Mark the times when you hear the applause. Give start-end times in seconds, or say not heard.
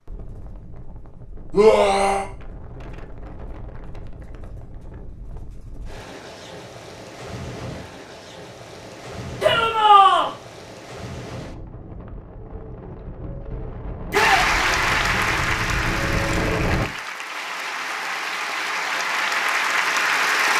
14.1-20.5.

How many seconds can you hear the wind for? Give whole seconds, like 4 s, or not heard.
17 s.